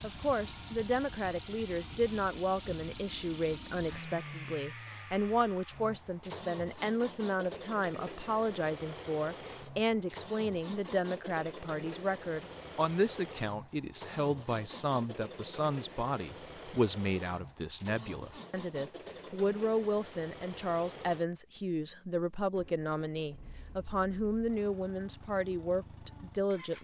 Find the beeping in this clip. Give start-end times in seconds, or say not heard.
not heard.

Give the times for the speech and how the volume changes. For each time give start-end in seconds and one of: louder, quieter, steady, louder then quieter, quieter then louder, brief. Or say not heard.
0.0-26.7 steady.